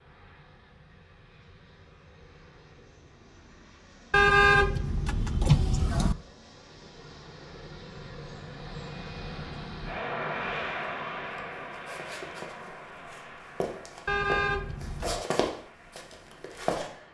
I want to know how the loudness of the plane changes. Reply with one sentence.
The loudness of the plane goes up, then down.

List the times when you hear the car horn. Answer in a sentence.
You can hear the car horn from 4.1 to 6.2 s and from 14.1 to 15.2 s.